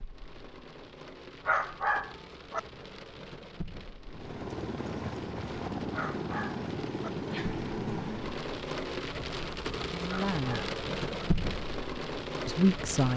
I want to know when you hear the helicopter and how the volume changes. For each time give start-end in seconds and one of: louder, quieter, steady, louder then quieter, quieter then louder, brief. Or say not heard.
4.0-8.4 steady.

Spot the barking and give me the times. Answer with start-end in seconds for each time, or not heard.
1.4-2.6, 5.9-7.1, 10.1-11.2.